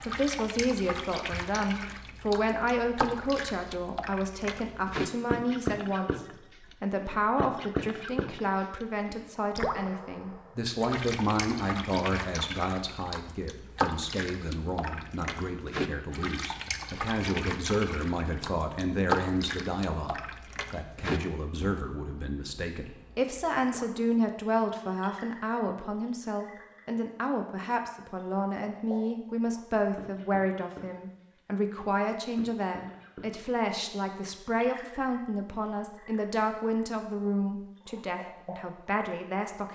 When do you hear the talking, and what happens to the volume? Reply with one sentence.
You can hear the talking from 0.1 to 39.7 s, at a steady volume.